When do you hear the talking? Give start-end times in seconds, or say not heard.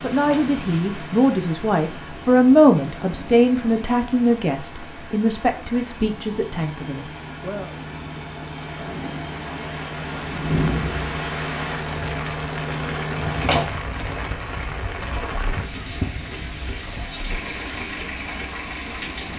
0.0-7.7.